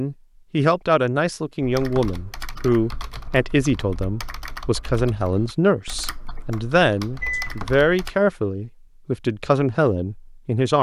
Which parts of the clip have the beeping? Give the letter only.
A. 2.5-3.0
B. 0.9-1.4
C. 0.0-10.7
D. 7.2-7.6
D.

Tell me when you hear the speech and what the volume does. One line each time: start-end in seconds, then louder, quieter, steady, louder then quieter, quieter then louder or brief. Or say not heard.
0.0-10.7 steady.